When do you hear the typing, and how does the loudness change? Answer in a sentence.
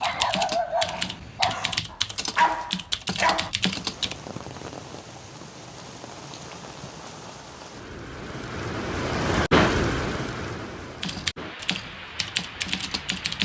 You can hear the typing from 0.0 to 4.2 s, at a steady volume; and briefly from 11.0 to 13.4 s.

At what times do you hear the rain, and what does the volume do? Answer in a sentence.
The rain can be heard from 3.6 to 13.4 s, getting louder then quieter.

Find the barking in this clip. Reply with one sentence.
You can hear the barking from 0.0 to 3.5 s.